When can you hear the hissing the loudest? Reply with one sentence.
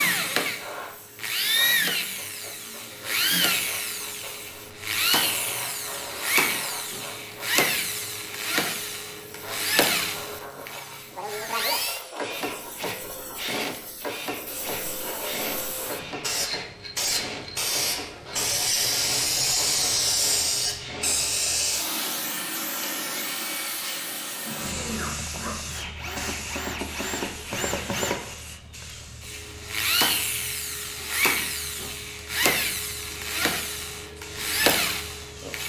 The volume of the hissing peaks at 20 seconds.